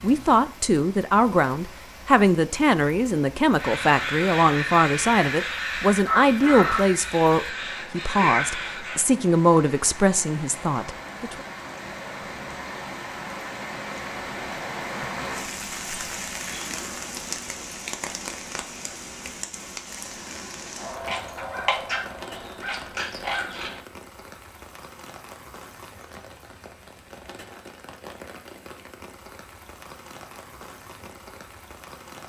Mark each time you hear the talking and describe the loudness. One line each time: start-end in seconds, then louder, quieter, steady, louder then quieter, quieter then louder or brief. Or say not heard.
0.0-11.3 steady.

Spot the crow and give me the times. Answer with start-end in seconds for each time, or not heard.
3.5-9.0, 20.8-23.8.